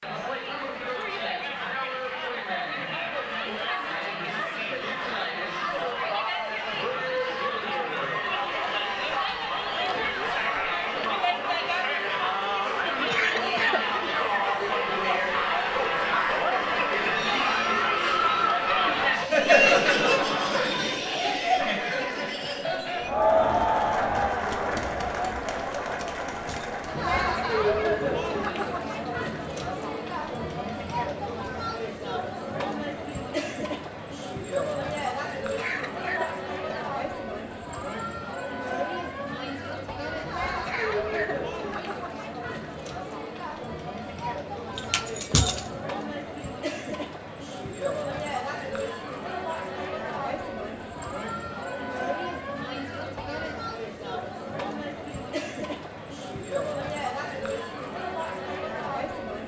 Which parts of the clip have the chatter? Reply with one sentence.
The chatter can be heard from 0.0 to 59.4 s.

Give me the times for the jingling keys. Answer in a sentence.
You can hear the jingling keys from 25.9 to 26.9 s and from 44.8 to 45.8 s.